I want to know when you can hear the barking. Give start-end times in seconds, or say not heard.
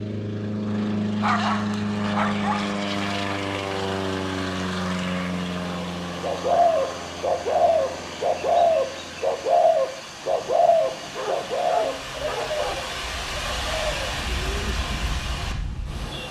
1.2-2.8, 10.9-12.8.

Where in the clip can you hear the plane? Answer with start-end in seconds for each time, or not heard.
0.0-16.2.